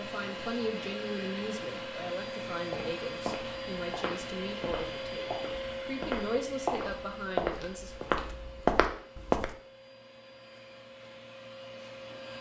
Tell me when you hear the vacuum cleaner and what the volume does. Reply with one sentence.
The vacuum cleaner can be heard from 0.0 to 12.3 s, getting quieter.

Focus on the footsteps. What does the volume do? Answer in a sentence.
The loudness of the footsteps goes up.